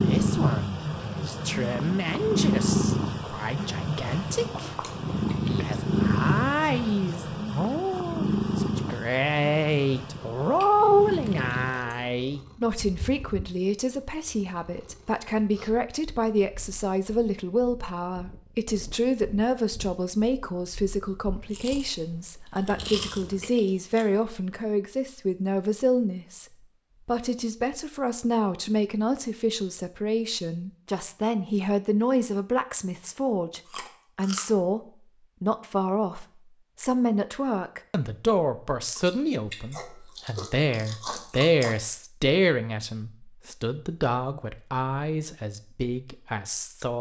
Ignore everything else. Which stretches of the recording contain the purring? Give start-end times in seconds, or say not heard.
0.0-23.5.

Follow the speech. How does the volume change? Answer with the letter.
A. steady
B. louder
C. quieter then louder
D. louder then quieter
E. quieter
A.